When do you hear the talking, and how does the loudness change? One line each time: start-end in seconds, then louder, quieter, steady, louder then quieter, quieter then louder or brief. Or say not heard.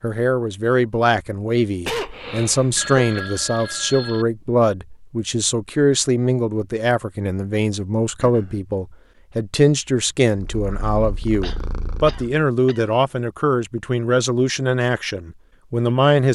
0.0-16.2 steady.